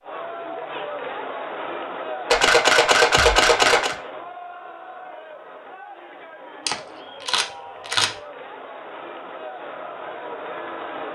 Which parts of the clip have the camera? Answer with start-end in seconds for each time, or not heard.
2.3-4.0, 6.7-8.1.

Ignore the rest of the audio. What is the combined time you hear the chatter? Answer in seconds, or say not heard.
11 s.